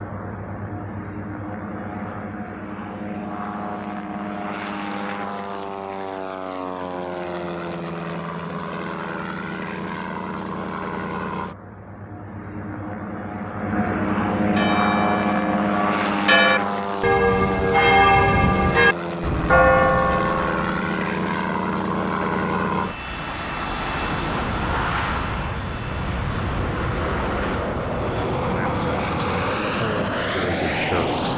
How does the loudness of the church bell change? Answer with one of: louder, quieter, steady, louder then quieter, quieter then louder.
louder.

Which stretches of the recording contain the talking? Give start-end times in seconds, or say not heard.
28.4-31.3.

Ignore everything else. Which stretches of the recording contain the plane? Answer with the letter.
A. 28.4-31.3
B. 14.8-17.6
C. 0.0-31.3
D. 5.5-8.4
C.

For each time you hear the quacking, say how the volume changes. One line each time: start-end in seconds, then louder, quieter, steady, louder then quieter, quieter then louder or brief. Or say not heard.
not heard.